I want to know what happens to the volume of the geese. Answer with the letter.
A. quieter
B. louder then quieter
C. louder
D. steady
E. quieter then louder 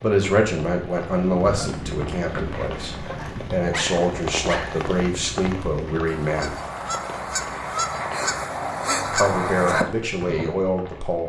C.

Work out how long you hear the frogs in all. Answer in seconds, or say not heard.
not heard.